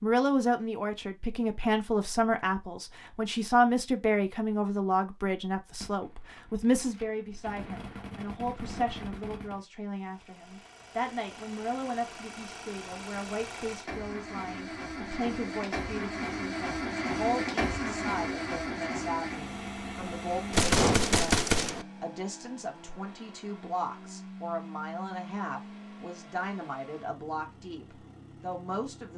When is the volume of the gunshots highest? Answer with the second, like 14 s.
21 s.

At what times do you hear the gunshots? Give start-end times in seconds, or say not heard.
5.8-9.7, 20.5-21.9.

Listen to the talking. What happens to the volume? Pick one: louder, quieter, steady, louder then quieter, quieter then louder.
quieter.